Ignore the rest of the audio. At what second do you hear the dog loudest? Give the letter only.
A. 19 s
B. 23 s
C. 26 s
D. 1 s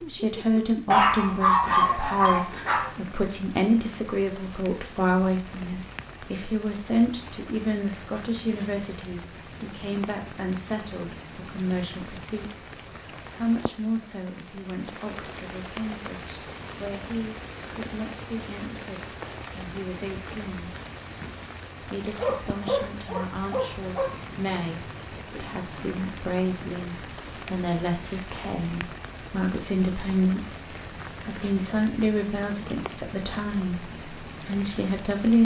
D.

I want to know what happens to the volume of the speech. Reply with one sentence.
The volume of the speech goes down, then up.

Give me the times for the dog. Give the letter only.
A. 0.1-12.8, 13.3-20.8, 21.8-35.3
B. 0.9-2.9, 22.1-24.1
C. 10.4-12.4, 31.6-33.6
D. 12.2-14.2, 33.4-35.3
B.